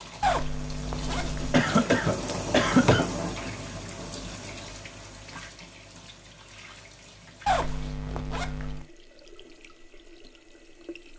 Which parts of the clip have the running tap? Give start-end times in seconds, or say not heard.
0.0-11.1.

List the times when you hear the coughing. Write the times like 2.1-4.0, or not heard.
1.5-3.0.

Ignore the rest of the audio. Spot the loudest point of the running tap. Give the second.
3 s.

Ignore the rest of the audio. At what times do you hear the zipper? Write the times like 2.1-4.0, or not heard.
0.2-1.6, 7.5-8.8.